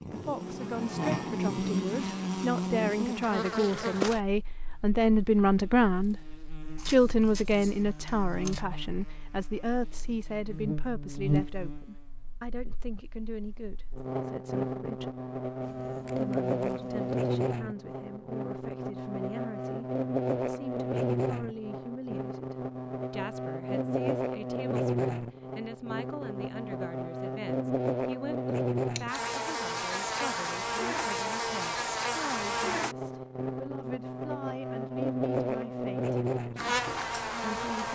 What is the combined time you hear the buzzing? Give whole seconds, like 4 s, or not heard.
38 s.